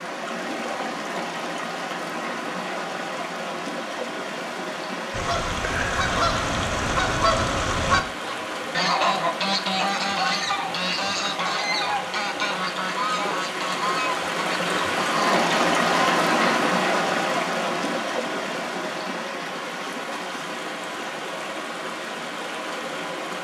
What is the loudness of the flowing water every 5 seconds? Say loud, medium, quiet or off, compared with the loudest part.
medium, medium, medium, loud, medium.